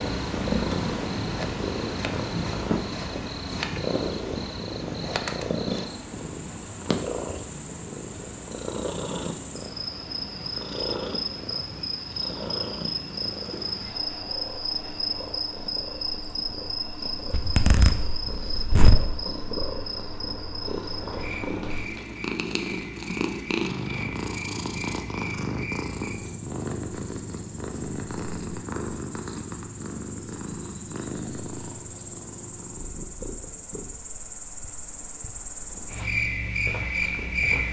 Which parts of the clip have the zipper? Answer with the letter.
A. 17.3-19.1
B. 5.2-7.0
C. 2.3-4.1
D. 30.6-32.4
A.